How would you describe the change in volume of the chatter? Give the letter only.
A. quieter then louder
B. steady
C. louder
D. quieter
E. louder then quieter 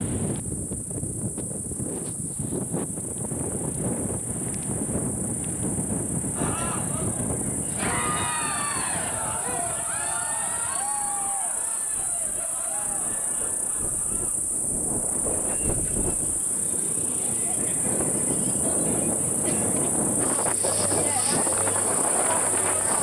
A.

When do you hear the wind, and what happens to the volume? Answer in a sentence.
The wind can be heard from 0.0 to 22.9 s, getting quieter then louder.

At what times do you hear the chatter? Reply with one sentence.
You can hear the chatter from 6.3 to 22.9 s.